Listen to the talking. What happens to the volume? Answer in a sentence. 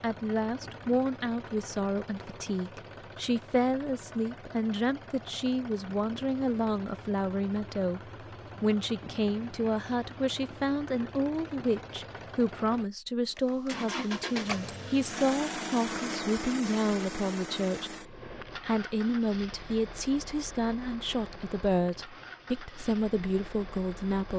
The volume of the talking stays about the same.